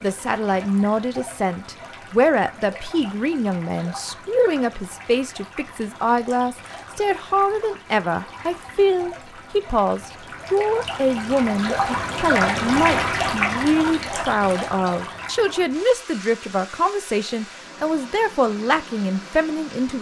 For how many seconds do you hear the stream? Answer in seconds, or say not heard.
20 s.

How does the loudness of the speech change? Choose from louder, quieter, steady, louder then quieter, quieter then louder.
steady.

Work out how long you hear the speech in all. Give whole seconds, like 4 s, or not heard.
20 s.